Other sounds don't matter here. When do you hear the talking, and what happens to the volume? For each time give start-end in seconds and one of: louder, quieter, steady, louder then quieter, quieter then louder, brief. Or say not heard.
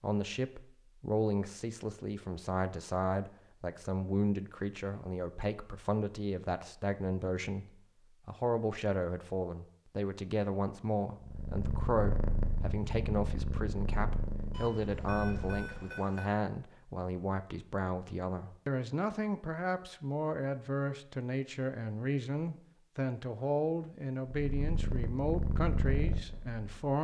0.0-26.9 steady.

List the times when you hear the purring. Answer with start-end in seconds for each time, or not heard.
11.2-16.0, 24.2-26.6.